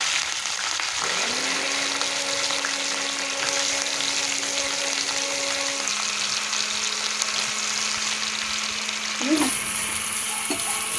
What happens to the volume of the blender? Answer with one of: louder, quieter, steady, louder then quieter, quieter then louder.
steady.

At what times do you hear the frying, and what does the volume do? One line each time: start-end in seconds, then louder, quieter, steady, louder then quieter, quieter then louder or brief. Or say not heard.
0.0-10.9 steady.